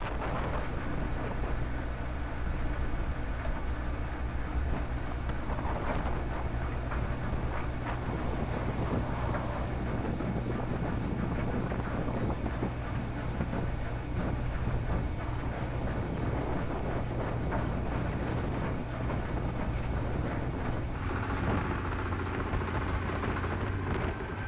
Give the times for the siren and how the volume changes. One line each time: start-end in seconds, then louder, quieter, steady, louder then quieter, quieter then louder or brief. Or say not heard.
not heard.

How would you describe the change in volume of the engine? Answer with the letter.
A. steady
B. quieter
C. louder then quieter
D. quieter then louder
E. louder
A.